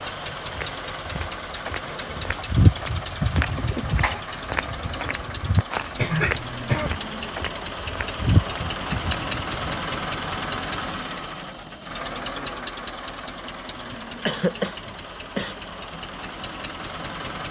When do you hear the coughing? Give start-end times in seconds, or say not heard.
3.4-4.2, 6.0-6.9, 13.8-15.6.